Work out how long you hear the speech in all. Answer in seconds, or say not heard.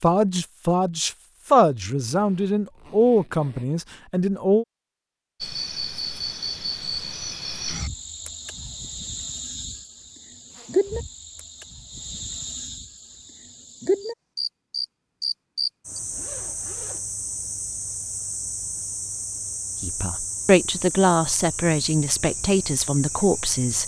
9 s.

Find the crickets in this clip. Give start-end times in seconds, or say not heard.
5.4-23.8.